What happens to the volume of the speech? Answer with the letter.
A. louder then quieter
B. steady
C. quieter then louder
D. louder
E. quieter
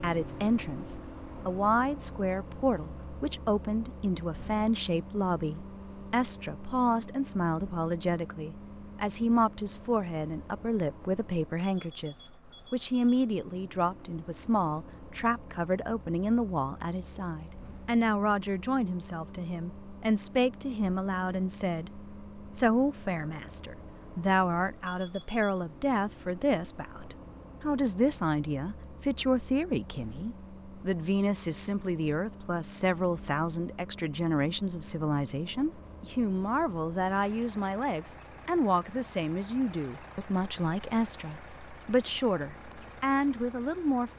B.